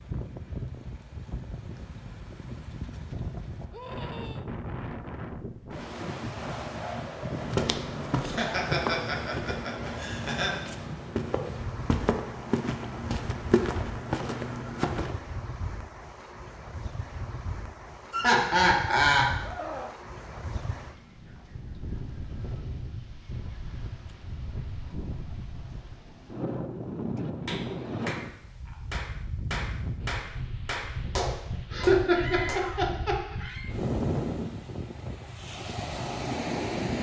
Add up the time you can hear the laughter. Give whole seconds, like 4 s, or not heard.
5 s.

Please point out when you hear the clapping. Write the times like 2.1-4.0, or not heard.
27.4-32.7.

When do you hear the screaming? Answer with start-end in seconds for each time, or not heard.
3.7-4.5, 19.4-20.0, 32.0-33.8.